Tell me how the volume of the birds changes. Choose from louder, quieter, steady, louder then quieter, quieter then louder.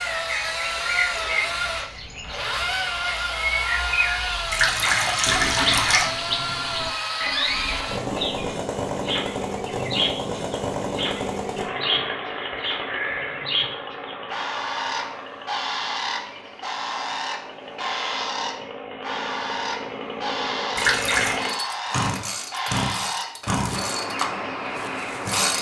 steady.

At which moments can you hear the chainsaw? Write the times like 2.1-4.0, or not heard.
0.0-25.5.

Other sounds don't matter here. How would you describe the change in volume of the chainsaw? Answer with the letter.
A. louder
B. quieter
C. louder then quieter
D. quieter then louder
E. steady
D.